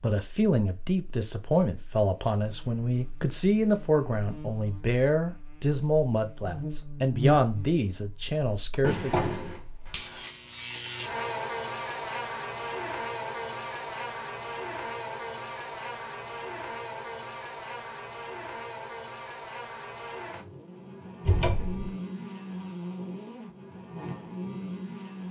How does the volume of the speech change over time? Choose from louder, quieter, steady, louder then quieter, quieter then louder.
steady.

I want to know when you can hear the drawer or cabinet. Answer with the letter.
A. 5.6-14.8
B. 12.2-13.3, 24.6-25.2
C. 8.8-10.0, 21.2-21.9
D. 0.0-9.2
C.